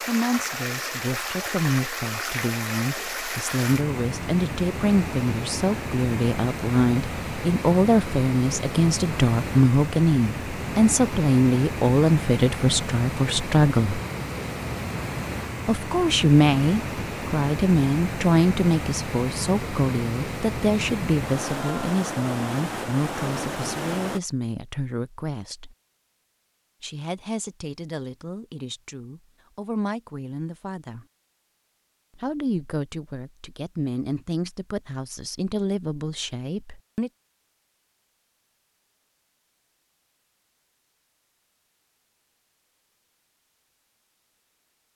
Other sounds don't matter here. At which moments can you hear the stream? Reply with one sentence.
The stream can be heard from 0.0 to 24.2 s.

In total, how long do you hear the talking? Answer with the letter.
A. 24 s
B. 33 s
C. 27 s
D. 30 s
B.